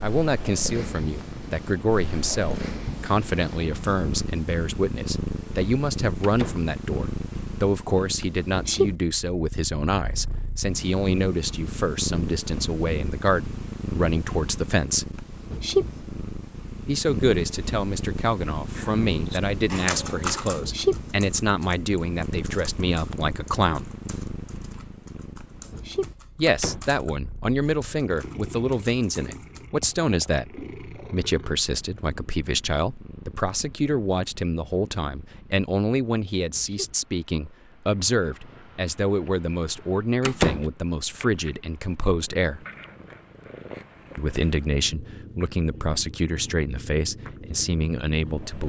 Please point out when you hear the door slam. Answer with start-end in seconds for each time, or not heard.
6.2-6.7, 26.4-26.9, 40.2-40.7.